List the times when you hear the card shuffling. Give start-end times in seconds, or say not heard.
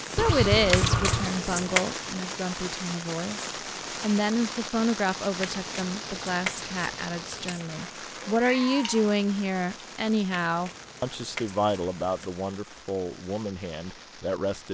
0.7-1.9, 5.4-7.8, 10.4-12.3.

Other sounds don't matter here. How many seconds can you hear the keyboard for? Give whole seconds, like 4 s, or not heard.
not heard.